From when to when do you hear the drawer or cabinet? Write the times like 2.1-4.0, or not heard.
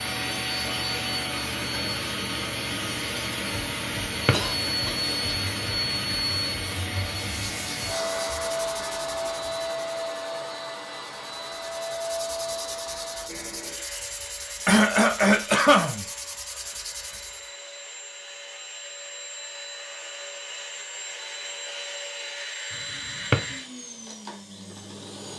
4.0-4.5, 23.1-23.6.